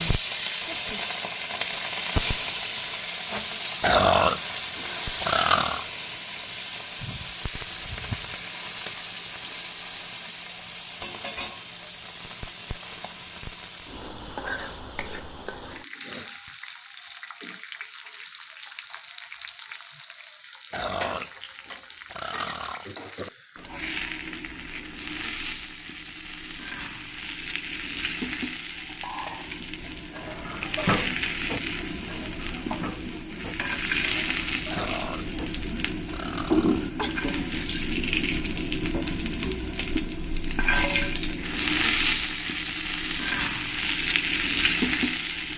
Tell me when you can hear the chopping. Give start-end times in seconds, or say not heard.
not heard.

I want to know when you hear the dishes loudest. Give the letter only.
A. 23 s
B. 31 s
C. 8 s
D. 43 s
B.